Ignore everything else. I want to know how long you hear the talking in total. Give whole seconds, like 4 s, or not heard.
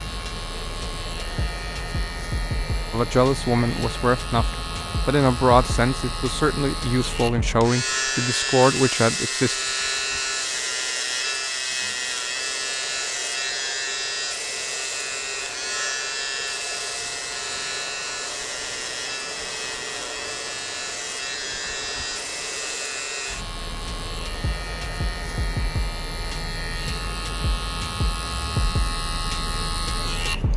7 s.